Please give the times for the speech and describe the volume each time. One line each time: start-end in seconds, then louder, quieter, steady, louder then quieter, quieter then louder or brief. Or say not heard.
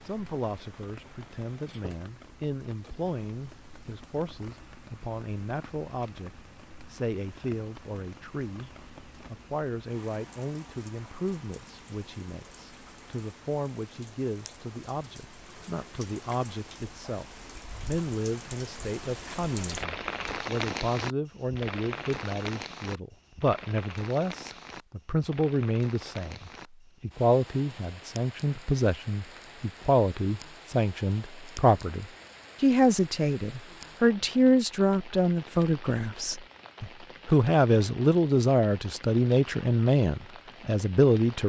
0.1-17.2 steady
17.9-41.4 louder.